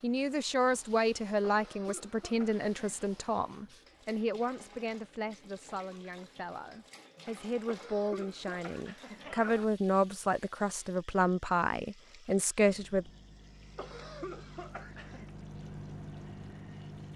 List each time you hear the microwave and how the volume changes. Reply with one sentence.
You can hear the microwave from 12.7 to 17.1 s, getting louder.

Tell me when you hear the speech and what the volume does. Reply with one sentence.
The speech can be heard from 0.0 to 13.1 s, getting quieter then louder.